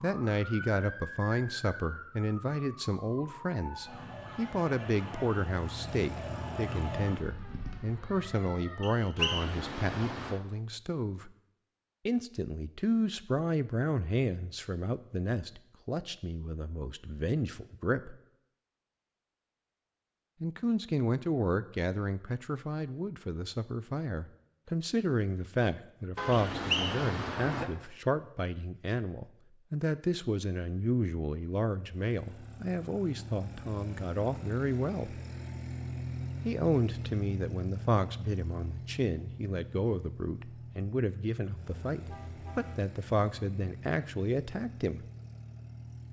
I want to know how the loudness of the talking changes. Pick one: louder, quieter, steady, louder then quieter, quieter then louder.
steady.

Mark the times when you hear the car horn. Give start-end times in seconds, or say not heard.
9.2-10.4, 26.1-27.7, 41.4-42.8.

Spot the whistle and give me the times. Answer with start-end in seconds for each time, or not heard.
8.8-9.4, 26.3-27.0.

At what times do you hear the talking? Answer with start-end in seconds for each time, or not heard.
0.0-11.3, 12.1-18.1, 20.4-35.2, 36.5-45.0.